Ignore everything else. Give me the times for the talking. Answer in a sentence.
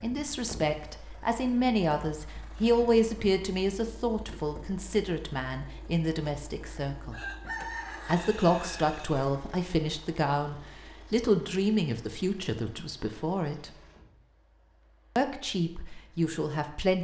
You can hear the talking from 0.0 to 7.2 s, from 8.1 to 13.8 s and from 15.2 to 16.9 s.